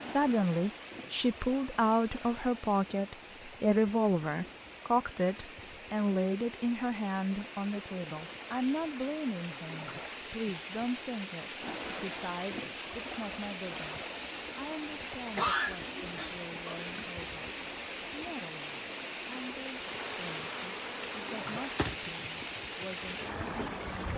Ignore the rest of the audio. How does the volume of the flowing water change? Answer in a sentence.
The volume of the flowing water goes up.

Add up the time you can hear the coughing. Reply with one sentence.
The coughing can be heard for 2 seconds in total.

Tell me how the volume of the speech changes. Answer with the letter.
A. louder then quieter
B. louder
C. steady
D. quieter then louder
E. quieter
E.